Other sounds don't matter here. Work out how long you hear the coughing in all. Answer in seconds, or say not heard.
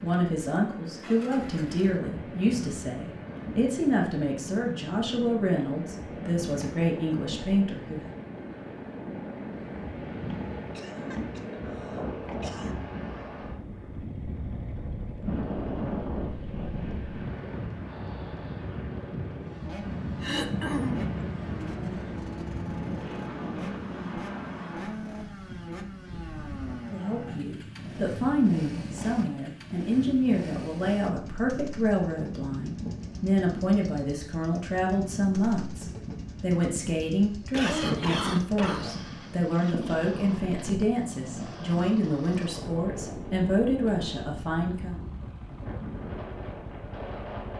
4 s.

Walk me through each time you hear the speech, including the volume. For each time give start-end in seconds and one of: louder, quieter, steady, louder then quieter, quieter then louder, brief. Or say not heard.
0.0-8.2 steady
26.9-45.0 steady.